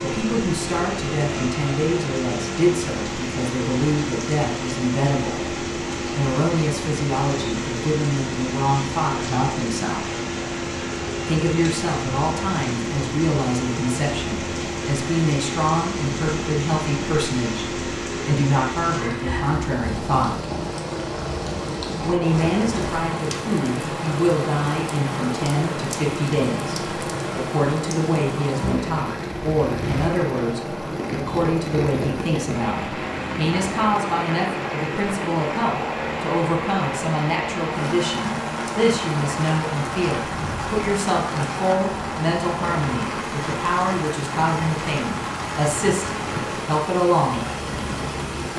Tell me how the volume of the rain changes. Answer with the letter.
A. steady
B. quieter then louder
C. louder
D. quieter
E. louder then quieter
A.